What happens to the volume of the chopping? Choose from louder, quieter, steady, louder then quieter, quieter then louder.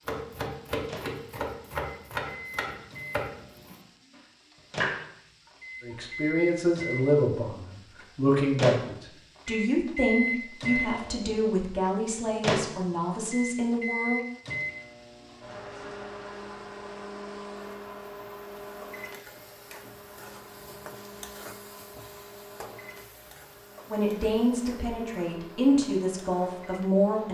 quieter then louder.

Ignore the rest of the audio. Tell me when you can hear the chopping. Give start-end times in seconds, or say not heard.
0.1-6.0.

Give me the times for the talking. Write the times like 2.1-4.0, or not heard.
5.8-14.2, 23.9-27.2.